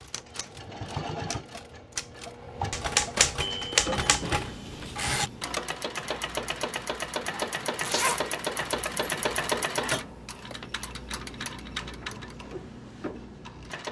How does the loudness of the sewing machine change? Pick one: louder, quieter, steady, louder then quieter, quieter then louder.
louder then quieter.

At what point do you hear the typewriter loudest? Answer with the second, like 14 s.
3 s.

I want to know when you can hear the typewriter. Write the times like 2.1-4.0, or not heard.
0.0-5.3.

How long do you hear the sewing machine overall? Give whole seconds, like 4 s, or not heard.
14 s.